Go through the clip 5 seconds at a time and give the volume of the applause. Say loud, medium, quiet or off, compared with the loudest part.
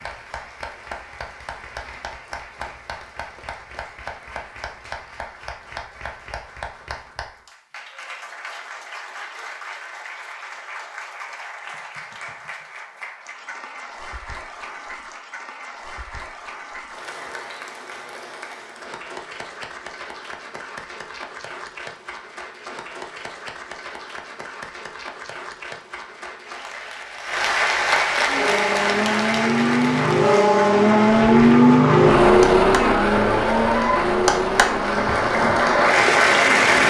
quiet, quiet, quiet, quiet, quiet, medium, medium, loud.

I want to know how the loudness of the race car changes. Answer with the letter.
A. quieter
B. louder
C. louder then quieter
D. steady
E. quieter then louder
C.